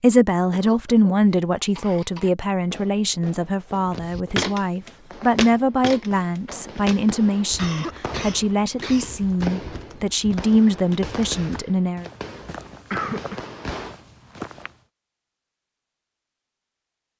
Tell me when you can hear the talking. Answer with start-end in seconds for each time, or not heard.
0.0-12.1.